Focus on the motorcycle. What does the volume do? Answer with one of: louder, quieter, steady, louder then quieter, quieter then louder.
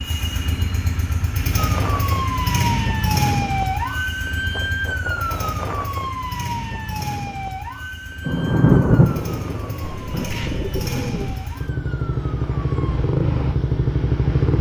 quieter then louder.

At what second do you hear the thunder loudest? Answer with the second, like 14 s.
9 s.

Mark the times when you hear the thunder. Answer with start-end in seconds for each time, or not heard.
8.2-11.3.